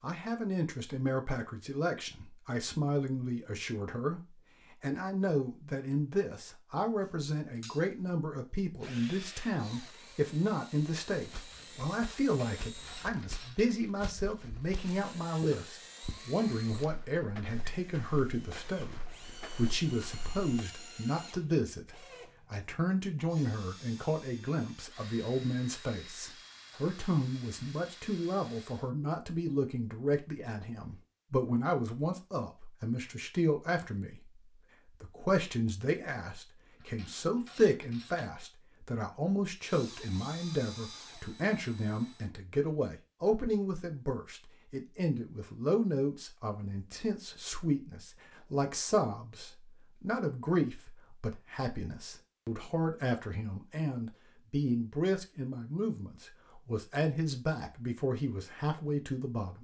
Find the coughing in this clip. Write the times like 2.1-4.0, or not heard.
not heard.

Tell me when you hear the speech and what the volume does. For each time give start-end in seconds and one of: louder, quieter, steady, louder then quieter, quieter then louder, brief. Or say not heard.
0.0-59.5 steady.